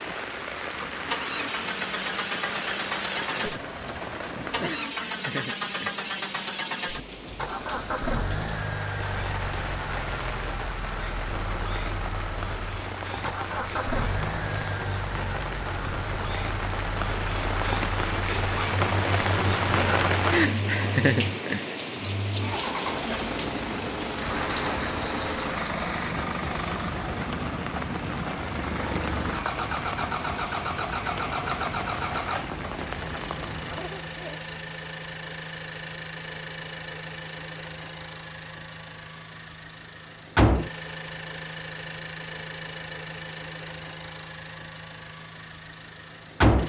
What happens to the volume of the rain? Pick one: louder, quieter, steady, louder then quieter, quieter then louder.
louder then quieter.